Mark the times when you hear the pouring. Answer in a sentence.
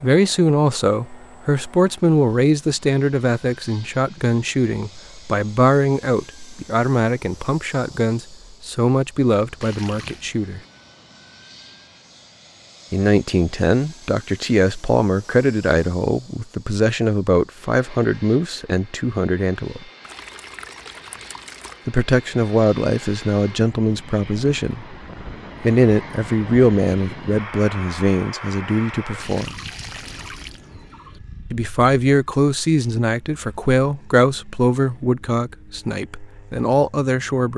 The pouring can be heard from 9.6 to 10.2 s, from 20.0 to 21.9 s and from 29.2 to 31.2 s.